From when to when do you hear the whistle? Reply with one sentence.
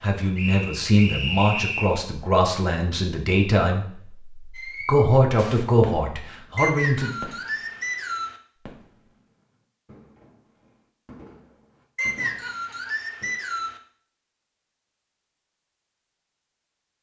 The whistle can be heard from 0.3 to 2.0 s, from 6.5 to 8.3 s and from 11.9 to 13.8 s.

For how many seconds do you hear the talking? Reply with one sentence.
You can hear the talking for 7 seconds altogether.